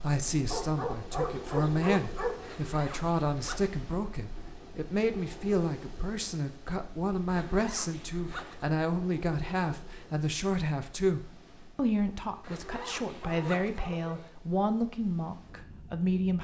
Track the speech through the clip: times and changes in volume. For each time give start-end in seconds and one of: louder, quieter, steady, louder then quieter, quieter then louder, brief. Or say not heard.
0.0-16.3 steady.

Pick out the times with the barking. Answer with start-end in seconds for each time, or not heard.
0.5-2.5, 12.7-14.3.